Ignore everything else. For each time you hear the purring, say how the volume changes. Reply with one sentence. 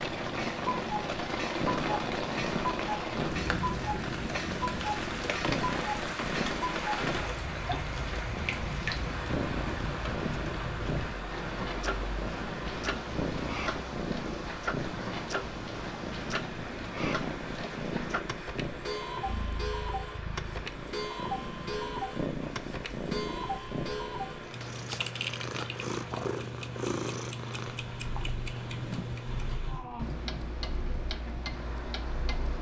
The purring can be heard from 0.0 to 32.5 s, at a steady volume.